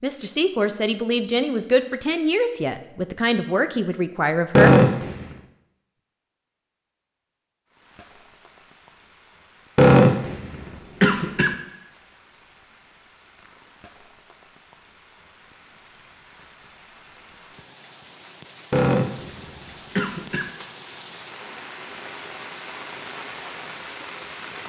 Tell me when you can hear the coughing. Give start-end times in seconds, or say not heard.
4.5-5.3, 9.8-11.6, 18.7-20.5.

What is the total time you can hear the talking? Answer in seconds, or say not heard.
5 s.